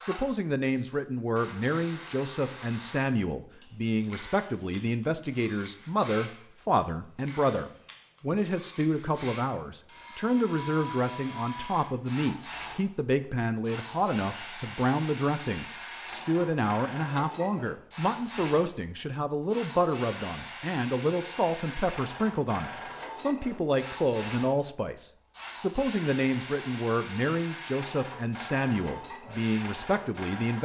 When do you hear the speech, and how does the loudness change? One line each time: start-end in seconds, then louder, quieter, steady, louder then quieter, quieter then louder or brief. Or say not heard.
0.0-30.6 steady.